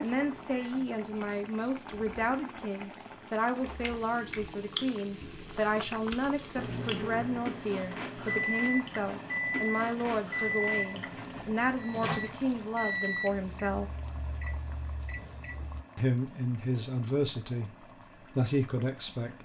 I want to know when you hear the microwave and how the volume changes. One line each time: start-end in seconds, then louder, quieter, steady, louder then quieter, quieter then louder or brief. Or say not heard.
0.0-1.9 brief
6.5-15.8 quieter.